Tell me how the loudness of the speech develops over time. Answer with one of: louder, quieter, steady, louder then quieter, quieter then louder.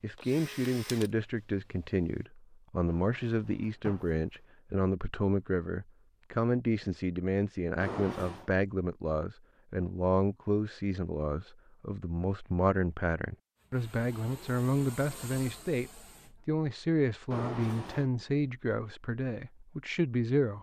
steady.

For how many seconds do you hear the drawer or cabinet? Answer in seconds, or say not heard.
3 s.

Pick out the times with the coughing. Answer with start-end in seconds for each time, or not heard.
not heard.